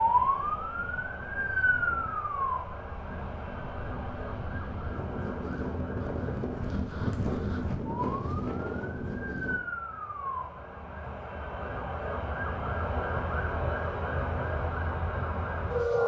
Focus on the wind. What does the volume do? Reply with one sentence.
The loudness of the wind goes up.